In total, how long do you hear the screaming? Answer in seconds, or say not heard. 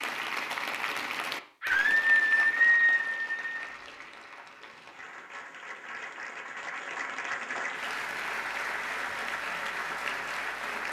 2 s.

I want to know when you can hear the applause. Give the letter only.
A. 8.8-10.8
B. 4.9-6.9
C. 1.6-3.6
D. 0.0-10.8
D.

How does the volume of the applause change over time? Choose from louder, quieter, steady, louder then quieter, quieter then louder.
quieter then louder.